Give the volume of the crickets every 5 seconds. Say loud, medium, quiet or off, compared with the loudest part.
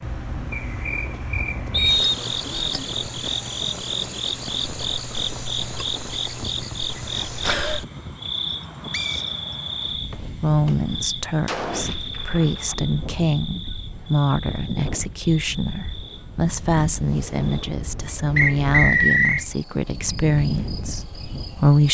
loud, loud, medium, quiet, quiet.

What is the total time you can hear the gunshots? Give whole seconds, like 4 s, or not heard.
2 s.